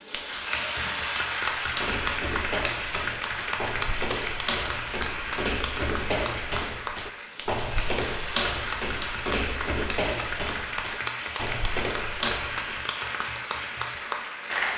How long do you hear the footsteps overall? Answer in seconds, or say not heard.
11 s.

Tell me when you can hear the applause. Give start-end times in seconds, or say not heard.
0.0-14.7.